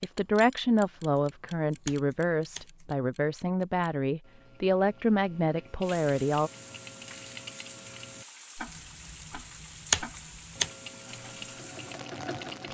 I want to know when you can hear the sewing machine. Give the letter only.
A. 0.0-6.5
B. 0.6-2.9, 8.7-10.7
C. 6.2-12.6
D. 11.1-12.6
D.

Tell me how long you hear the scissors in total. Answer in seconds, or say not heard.
4 s.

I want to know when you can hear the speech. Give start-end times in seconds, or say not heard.
0.0-6.5.